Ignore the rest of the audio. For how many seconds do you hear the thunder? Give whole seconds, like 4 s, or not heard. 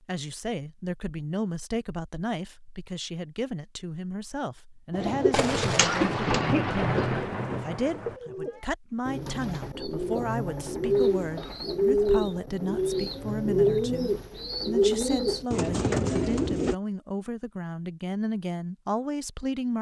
3 s.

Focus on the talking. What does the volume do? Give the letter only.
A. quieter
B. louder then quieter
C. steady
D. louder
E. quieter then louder
C.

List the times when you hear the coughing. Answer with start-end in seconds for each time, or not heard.
5.8-7.2.